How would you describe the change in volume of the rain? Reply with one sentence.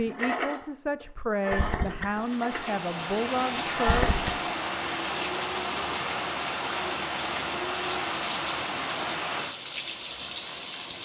The loudness of the rain stays about the same.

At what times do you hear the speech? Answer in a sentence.
The speech can be heard from 0.0 to 4.1 s.